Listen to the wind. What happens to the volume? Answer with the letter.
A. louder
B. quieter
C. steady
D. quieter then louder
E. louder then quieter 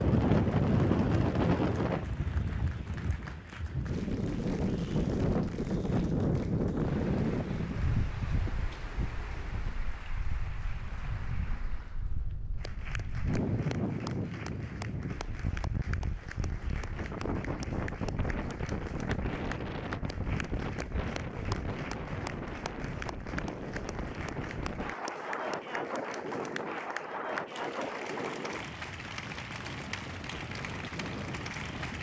B.